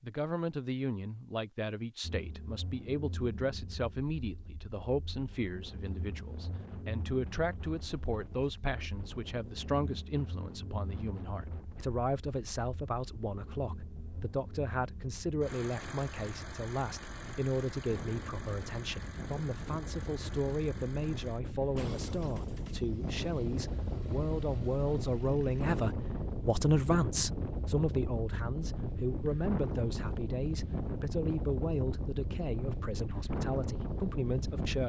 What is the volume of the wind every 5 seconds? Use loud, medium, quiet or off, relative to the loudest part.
off, quiet, quiet, medium, loud, loud, loud.